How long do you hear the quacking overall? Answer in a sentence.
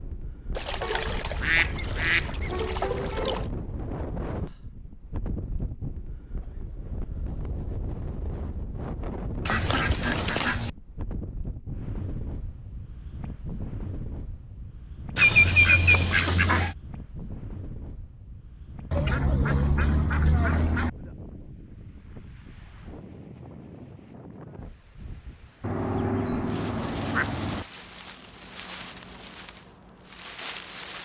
You can hear the quacking for 10 seconds altogether.